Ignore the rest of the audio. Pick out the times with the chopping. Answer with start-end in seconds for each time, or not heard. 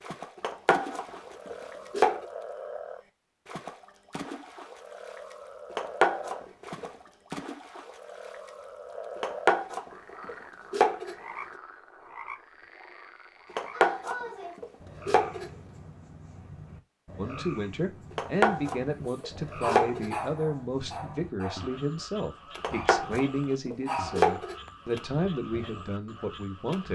0.4-2.2, 5.8-6.9, 9.2-11.2, 13.6-15.5, 18.1-20.1, 22.6-24.6.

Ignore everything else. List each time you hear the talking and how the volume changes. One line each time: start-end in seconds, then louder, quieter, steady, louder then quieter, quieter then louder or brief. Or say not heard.
17.1-26.8 steady.